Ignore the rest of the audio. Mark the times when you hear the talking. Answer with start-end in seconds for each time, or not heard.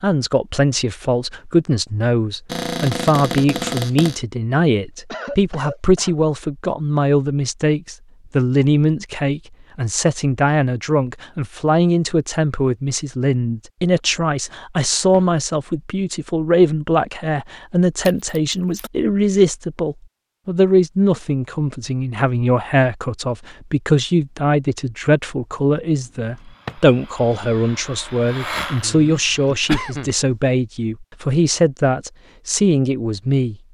0.0-33.5.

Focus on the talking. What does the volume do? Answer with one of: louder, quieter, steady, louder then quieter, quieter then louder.
steady.